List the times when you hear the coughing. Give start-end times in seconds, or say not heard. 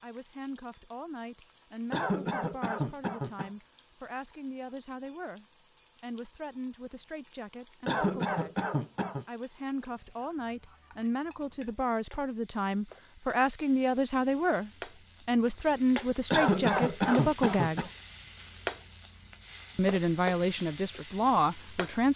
1.9-3.5, 7.8-9.2, 16.3-17.9.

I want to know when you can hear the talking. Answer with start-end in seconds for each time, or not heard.
0.0-8.6, 9.2-17.9, 19.8-22.1.